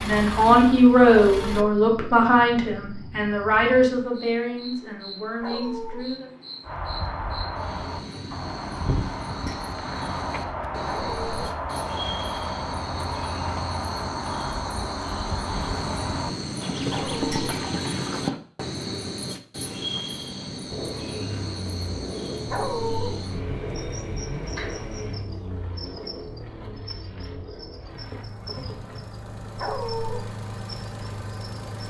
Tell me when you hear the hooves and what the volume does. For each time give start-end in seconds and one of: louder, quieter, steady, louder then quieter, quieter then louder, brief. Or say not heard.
6.7-18.4 steady.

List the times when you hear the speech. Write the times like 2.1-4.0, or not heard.
0.0-6.3.